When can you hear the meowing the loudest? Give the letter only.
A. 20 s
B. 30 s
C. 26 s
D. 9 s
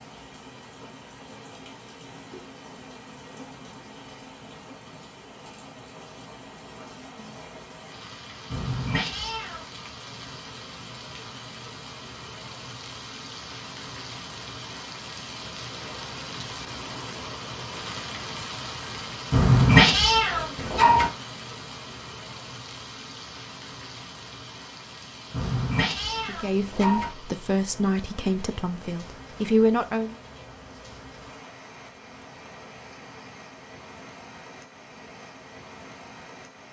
A.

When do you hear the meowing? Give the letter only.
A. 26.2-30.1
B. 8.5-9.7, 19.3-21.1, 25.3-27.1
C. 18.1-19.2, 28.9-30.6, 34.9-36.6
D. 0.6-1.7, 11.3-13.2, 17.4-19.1
B.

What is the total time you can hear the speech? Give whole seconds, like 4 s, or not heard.
4 s.